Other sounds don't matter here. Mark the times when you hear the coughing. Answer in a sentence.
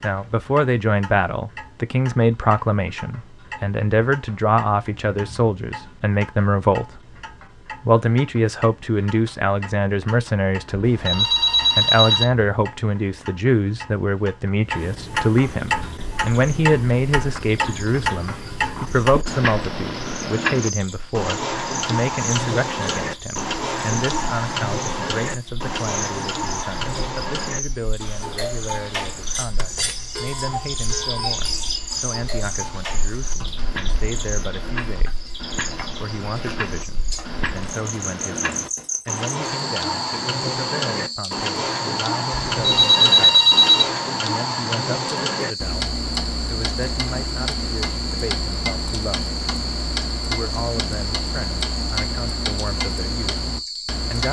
The coughing can't be heard in this clip.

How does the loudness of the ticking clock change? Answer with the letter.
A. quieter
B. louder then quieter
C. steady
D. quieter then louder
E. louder
E.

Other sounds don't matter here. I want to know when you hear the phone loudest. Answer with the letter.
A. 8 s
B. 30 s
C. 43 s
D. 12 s
C.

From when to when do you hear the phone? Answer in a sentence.
The phone can be heard from 10.8 to 12.2 s and from 42.5 to 43.9 s.